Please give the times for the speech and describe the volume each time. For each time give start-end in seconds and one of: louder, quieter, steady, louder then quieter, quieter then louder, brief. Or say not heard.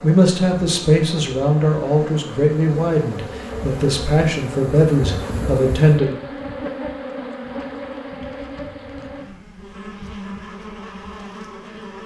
0.0-6.2 steady.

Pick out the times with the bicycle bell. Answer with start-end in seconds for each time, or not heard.
not heard.